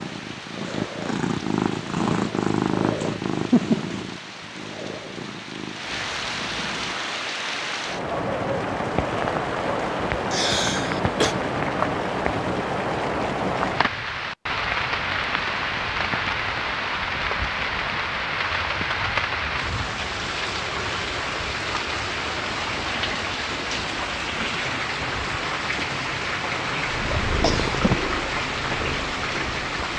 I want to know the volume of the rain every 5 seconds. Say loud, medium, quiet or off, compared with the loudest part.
quiet, loud, loud, loud, loud, loud.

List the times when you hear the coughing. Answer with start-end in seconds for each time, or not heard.
10.3-11.3, 27.1-27.8.